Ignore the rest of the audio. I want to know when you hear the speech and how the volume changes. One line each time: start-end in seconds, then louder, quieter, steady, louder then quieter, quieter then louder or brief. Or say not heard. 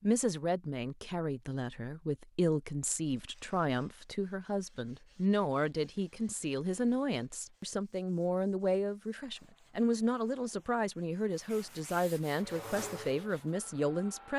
0.0-14.3 steady.